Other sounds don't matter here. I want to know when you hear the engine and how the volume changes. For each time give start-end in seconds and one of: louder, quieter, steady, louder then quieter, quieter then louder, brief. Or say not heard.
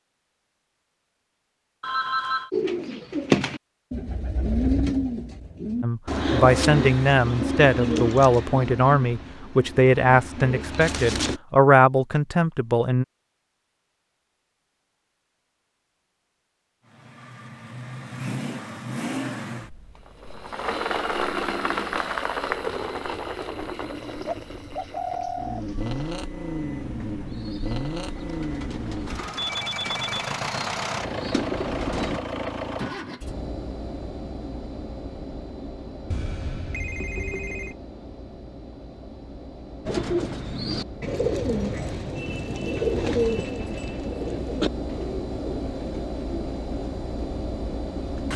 16.9-48.3 quieter then louder.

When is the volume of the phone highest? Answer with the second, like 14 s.
2 s.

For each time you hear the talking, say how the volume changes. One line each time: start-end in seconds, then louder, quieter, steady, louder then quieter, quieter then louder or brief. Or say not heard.
5.8-13.1 steady.